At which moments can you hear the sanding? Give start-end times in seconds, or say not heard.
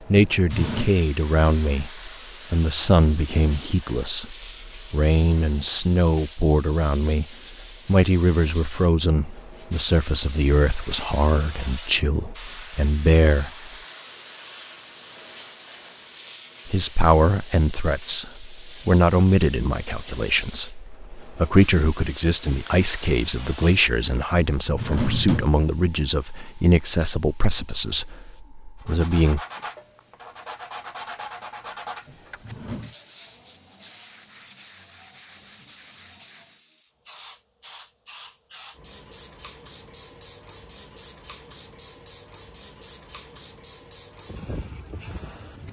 28.8-36.6.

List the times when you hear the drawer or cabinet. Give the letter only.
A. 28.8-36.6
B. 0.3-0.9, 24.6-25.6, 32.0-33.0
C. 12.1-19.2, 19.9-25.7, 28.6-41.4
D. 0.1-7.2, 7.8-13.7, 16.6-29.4
B.